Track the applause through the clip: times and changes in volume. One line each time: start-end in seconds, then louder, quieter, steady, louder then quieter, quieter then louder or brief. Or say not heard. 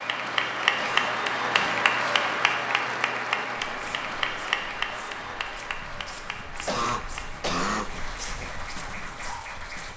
0.0-9.9 quieter.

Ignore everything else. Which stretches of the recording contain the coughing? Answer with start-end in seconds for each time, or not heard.
0.8-1.9, 6.5-7.9.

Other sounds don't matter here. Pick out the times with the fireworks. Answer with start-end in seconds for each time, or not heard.
not heard.